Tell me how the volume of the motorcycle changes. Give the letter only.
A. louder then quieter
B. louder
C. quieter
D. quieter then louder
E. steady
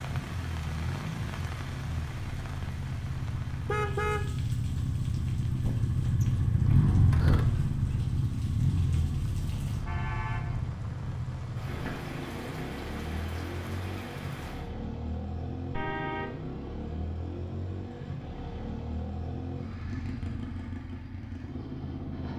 A.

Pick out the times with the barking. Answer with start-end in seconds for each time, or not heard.
not heard.